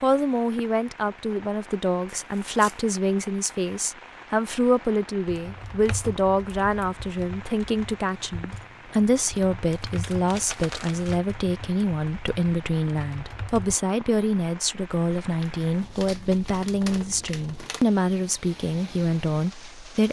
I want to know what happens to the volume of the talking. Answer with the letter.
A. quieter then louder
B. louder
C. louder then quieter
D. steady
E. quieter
D.